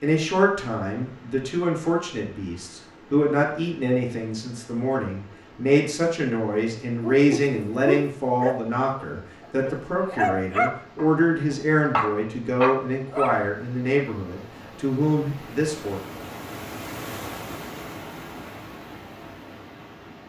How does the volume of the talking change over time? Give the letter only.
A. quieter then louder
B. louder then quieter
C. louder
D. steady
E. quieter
D.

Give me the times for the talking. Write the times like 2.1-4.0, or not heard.
0.0-16.0.